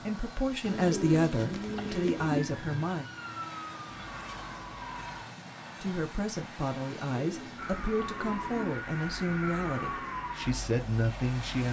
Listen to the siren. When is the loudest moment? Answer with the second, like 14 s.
10 s.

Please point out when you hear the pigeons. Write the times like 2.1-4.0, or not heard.
0.6-2.5, 7.1-8.7.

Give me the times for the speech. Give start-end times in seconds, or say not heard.
0.0-3.0, 5.8-11.6.